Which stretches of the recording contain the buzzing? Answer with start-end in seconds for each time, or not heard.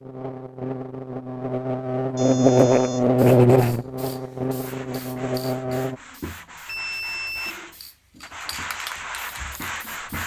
0.0-6.0.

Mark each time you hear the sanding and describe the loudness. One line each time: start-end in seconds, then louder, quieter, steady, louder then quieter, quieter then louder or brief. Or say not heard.
4.6-10.2 louder.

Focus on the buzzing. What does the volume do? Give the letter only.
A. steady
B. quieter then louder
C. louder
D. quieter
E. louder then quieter
E.